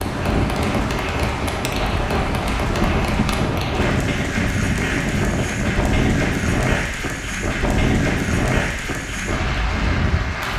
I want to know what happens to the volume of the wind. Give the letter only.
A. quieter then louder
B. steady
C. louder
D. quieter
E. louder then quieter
B.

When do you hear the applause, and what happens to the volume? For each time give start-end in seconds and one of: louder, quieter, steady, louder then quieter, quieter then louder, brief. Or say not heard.
0.0-10.5 steady.